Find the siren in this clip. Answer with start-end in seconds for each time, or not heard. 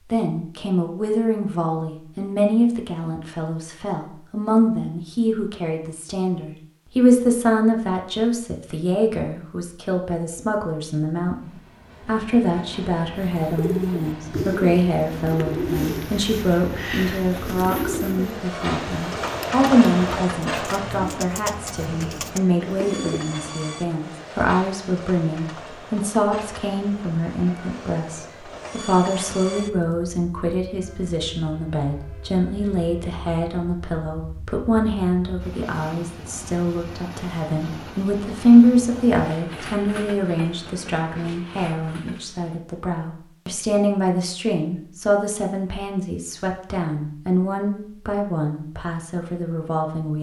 not heard.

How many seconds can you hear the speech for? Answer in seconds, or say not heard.
50 s.